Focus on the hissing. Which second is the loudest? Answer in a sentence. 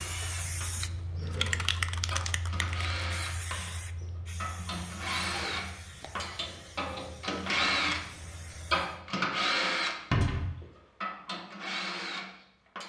The volume of the hissing peaks at 2 seconds.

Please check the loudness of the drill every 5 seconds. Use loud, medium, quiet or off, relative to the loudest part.
medium, loud, medium.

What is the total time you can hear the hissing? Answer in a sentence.
The hissing can be heard for 9 seconds in total.